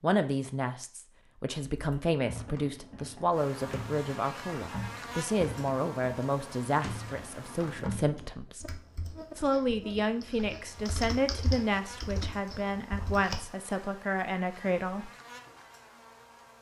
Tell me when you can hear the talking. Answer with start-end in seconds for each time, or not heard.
0.0-8.7, 9.3-15.1.